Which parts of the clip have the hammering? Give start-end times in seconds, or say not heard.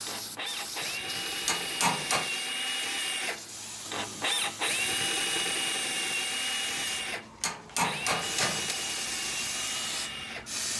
0.8-2.3, 6.8-8.8.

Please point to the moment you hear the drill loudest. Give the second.
5 s.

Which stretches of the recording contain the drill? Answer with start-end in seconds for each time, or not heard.
0.0-10.6.